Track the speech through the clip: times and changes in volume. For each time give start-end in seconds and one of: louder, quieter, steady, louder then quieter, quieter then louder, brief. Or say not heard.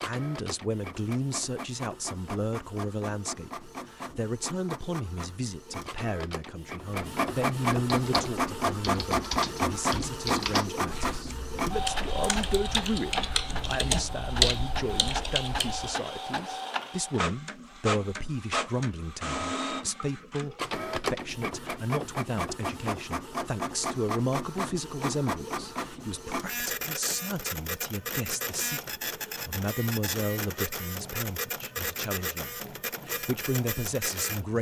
0.0-34.5 steady.